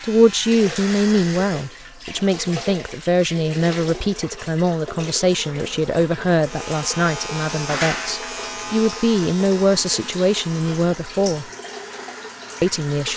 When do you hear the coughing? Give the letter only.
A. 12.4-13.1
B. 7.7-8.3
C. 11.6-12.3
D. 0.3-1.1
B.